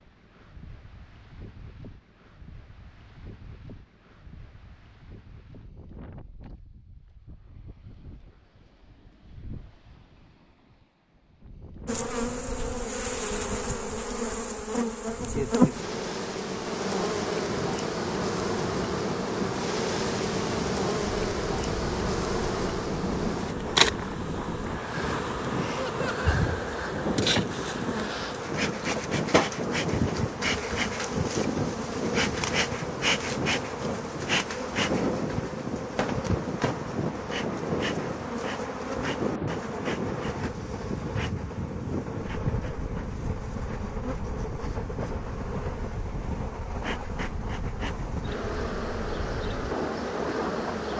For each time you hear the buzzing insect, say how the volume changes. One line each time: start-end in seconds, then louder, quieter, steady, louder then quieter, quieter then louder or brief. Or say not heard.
11.8-50.9 quieter.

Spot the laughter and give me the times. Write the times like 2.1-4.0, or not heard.
25.8-26.4.